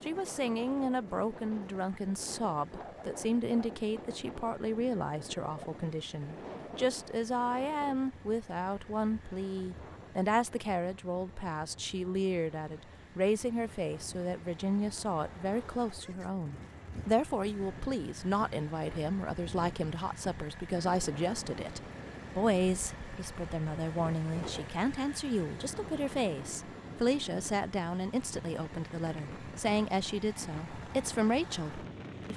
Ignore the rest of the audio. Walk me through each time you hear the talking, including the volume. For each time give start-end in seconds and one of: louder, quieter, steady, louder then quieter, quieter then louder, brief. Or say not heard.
0.0-32.3 steady.